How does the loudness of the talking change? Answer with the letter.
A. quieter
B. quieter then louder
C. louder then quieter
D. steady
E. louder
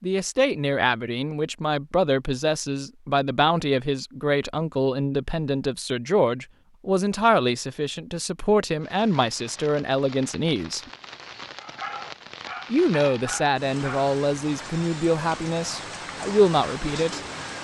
D.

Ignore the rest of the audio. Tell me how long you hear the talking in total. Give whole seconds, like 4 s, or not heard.
15 s.